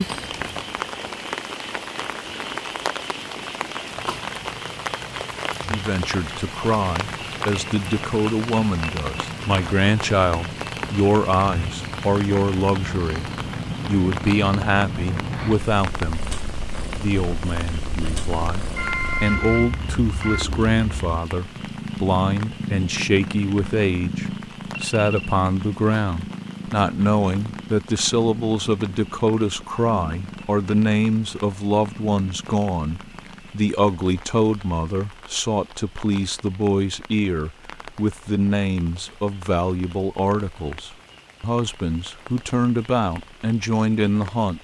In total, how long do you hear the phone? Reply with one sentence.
The phone can be heard for 2 seconds in total.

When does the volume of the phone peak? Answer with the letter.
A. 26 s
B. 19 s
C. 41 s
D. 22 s
B.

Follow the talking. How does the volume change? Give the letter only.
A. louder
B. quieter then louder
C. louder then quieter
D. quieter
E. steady
E.